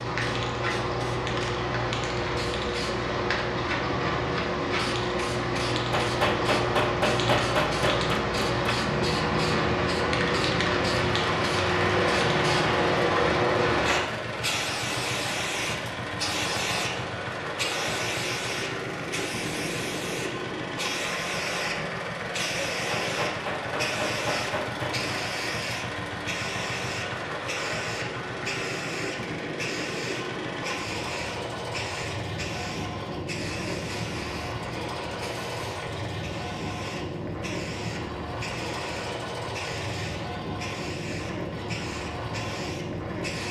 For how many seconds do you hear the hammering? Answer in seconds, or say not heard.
5 s.